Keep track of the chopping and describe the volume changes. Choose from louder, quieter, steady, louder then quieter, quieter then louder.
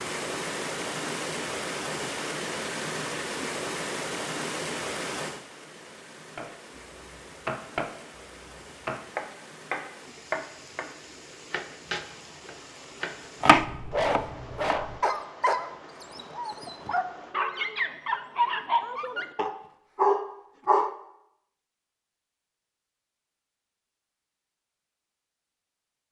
louder.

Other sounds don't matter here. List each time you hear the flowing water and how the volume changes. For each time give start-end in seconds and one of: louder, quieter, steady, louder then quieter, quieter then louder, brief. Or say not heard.
0.0-17.4 quieter.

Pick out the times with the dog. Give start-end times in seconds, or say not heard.
13.6-20.9.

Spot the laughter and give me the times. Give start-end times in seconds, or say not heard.
not heard.